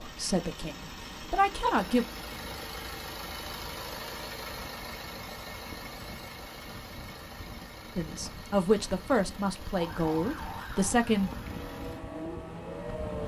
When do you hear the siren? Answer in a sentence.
The siren can be heard from 9.8 to 13.2 s.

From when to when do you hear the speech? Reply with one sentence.
The speech can be heard from 0.0 to 2.0 s and from 8.0 to 11.3 s.